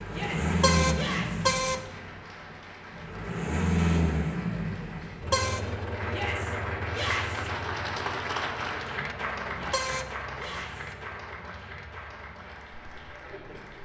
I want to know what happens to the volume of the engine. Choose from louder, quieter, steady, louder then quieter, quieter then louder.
quieter.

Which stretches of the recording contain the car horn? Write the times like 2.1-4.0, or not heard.
0.4-1.8, 5.1-5.7, 9.5-10.2.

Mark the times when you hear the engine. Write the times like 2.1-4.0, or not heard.
0.0-13.8.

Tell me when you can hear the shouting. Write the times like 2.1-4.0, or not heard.
0.1-1.5, 6.0-7.5, 9.5-10.9.